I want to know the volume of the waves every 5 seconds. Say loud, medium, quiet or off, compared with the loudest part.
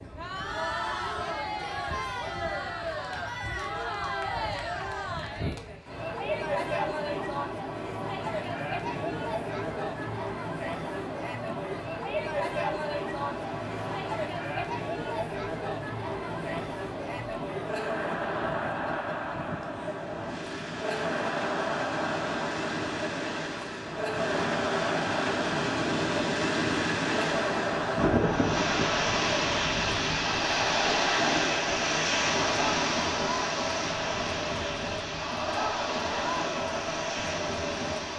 quiet, quiet, quiet, quiet, medium, loud, loud, medium.